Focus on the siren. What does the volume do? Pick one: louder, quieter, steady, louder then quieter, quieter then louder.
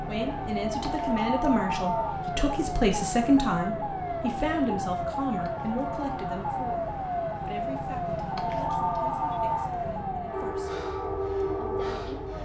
steady.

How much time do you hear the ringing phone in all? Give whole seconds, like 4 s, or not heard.
4 s.